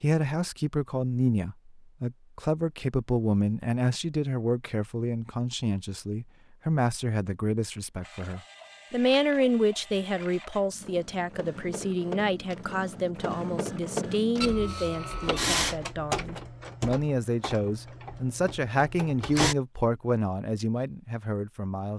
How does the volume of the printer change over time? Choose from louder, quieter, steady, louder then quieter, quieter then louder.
louder then quieter.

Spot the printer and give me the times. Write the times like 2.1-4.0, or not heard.
8.0-19.6.